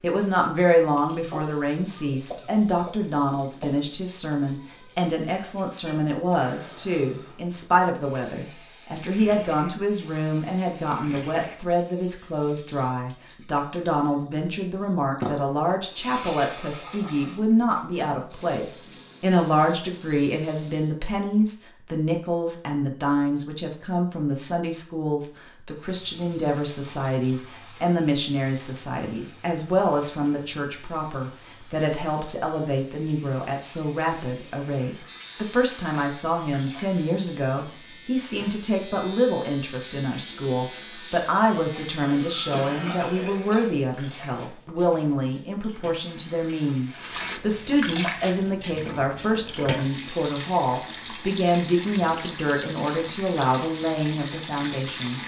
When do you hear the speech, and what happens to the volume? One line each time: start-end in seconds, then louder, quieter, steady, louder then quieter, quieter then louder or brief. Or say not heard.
0.0-55.2 steady.